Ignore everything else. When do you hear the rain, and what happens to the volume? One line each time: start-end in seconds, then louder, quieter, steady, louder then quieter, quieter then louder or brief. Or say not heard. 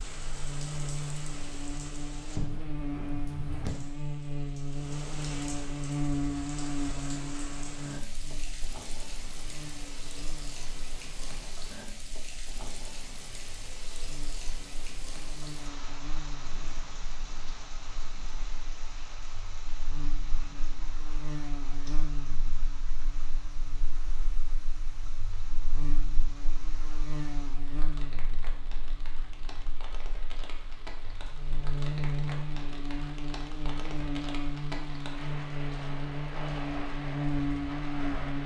0.0-38.4 quieter then louder.